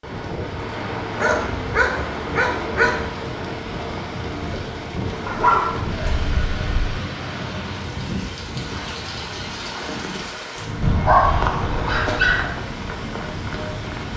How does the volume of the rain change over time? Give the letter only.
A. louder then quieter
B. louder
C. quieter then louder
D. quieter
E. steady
E.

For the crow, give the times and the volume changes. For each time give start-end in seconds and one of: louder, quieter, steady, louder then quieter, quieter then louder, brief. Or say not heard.
not heard.